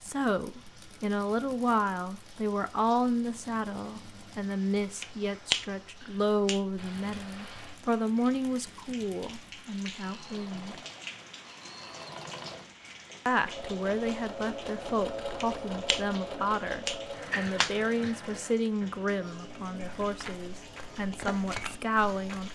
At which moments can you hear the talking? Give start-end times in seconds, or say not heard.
0.0-10.8, 13.2-22.4.